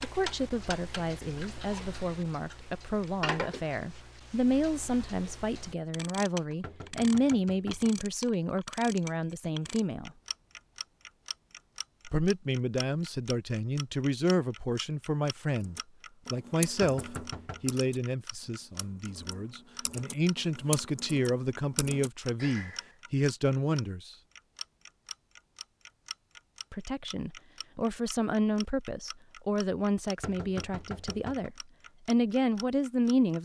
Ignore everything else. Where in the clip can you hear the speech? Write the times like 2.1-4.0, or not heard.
0.0-10.1, 12.1-24.1, 26.7-33.4.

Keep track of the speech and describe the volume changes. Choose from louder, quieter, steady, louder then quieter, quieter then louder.
steady.